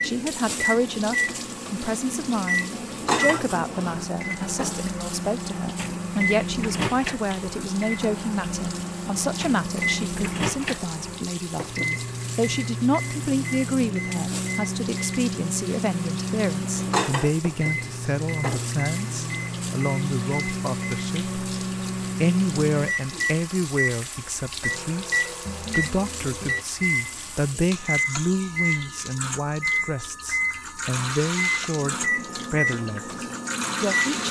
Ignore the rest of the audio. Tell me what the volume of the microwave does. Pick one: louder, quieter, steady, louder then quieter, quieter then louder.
steady.